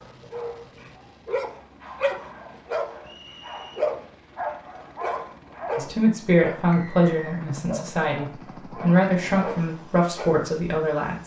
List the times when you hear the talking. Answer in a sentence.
The talking can be heard from 5.8 to 11.2 s.